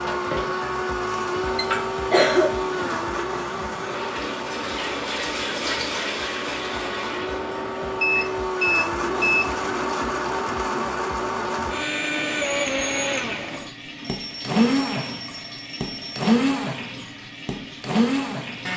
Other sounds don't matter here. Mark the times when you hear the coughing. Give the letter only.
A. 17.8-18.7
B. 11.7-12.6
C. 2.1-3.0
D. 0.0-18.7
C.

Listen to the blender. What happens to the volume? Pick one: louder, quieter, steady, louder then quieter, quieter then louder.
quieter then louder.